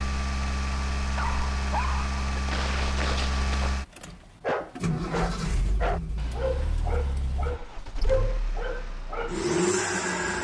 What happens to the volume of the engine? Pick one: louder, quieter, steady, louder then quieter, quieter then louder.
quieter then louder.